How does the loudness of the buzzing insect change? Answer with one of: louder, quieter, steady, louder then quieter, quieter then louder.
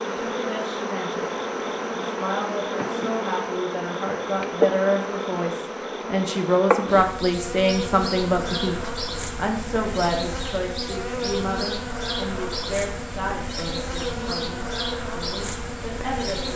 steady.